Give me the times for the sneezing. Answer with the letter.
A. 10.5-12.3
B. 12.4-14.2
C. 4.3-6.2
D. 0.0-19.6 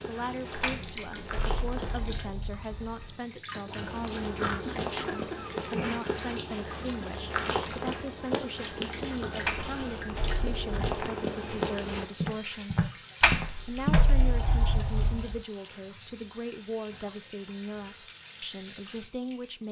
C.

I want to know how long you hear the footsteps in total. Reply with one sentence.
The footsteps can be heard for 13 seconds in total.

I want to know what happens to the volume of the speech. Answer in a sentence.
The loudness of the speech stays about the same.